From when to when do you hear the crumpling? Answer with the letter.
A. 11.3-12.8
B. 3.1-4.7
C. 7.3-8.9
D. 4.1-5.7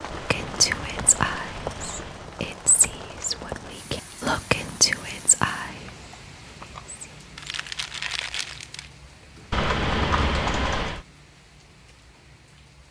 C.